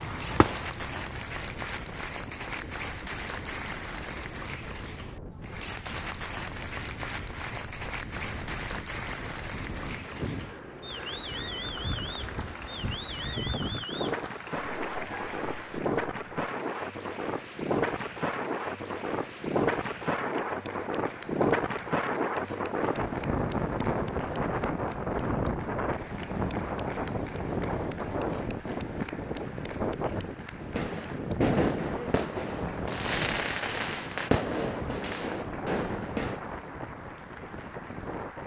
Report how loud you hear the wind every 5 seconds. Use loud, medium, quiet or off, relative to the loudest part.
quiet, quiet, medium, loud, loud, loud, medium, medium.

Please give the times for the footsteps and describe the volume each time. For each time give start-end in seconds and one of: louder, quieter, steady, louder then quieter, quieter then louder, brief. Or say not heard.
not heard.